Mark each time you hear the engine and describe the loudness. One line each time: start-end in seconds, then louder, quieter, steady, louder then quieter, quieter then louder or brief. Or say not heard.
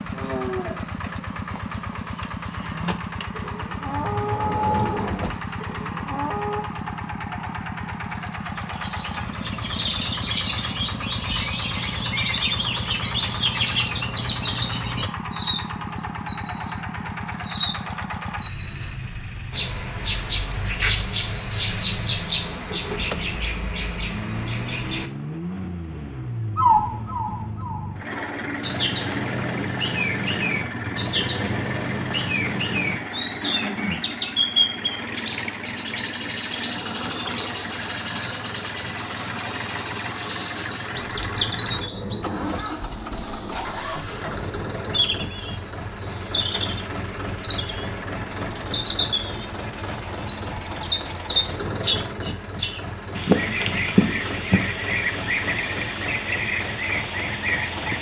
0.0-57.9 steady.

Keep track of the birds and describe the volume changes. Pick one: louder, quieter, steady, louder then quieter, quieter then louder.
steady.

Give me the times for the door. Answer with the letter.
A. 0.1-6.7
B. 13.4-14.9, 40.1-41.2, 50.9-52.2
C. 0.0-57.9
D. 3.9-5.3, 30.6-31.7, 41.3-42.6
D.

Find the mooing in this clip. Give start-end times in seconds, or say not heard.
0.1-6.7.